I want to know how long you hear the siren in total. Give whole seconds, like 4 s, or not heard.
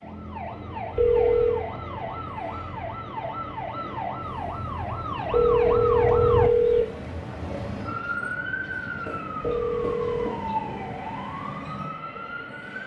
13 s.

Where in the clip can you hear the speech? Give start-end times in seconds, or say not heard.
not heard.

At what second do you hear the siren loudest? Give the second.
6 s.